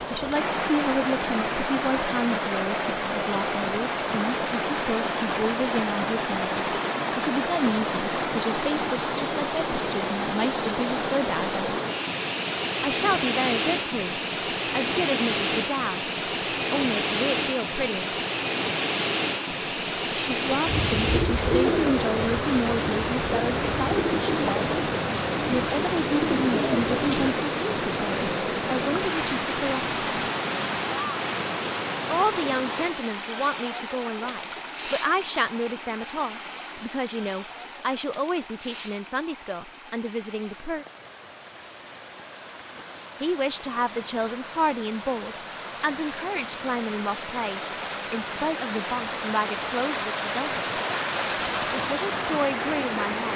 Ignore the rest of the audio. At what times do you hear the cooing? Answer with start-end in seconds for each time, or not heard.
20.6-27.4.